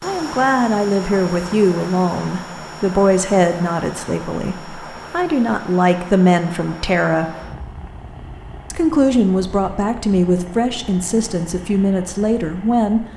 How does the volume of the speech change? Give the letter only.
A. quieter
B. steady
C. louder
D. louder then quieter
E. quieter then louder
B.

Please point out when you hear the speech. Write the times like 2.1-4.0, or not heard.
0.0-7.3, 8.7-13.1.